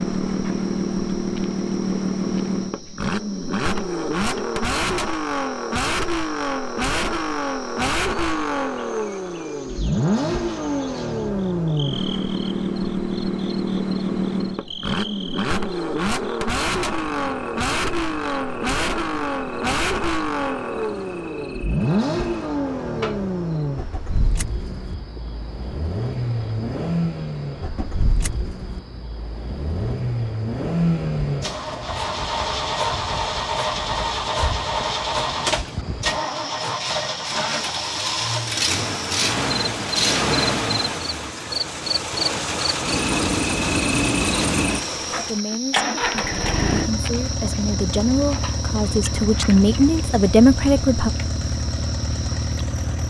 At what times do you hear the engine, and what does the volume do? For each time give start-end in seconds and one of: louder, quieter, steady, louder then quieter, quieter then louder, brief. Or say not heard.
0.0-53.0 steady.